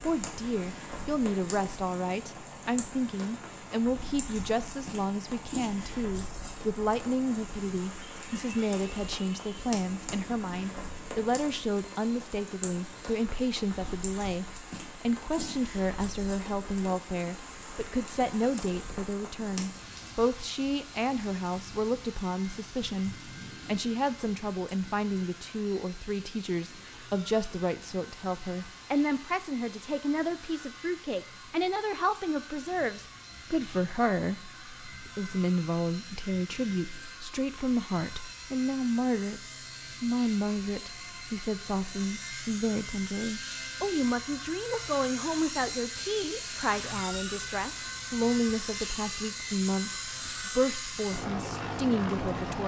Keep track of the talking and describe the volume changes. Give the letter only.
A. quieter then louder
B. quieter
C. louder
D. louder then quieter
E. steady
E.